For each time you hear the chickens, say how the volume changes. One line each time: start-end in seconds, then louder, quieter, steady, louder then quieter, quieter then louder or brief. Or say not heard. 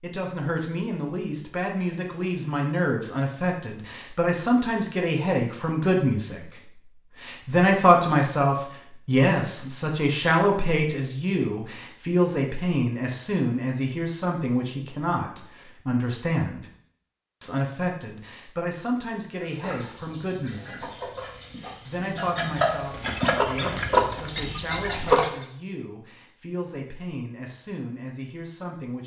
19.4-25.4 louder then quieter.